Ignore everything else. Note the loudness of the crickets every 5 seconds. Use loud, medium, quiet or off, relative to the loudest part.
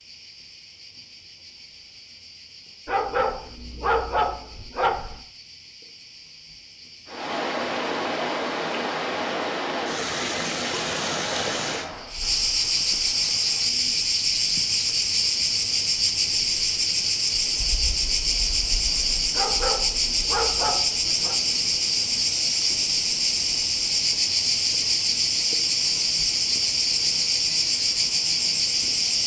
quiet, quiet, loud, loud, loud, loud.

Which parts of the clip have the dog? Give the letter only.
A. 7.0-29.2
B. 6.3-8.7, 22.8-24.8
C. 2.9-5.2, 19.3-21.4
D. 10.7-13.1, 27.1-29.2
C.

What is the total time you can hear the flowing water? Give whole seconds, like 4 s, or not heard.
22 s.